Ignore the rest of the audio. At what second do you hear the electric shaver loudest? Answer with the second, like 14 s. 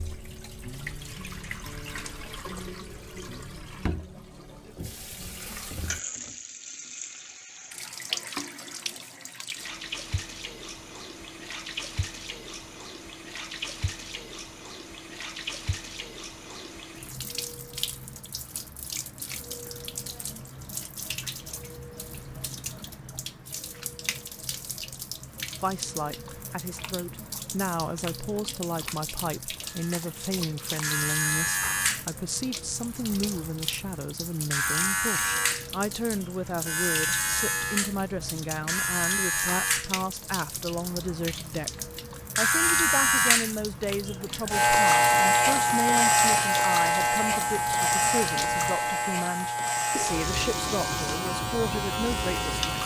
45 s.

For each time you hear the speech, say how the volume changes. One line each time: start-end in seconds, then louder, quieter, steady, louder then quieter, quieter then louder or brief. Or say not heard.
25.6-52.5 steady.